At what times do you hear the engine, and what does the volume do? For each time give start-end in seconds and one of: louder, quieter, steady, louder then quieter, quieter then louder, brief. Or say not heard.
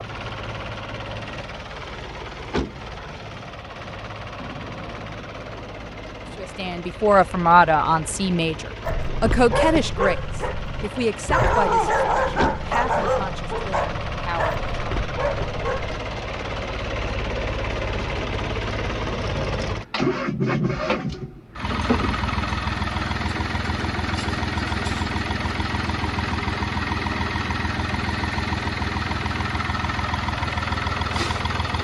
0.0-31.8 louder.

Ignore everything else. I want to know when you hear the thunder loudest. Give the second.
5 s.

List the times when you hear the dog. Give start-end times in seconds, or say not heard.
8.8-16.0.